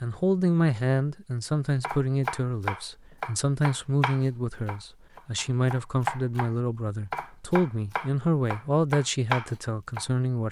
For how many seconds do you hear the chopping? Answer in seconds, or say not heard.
8 s.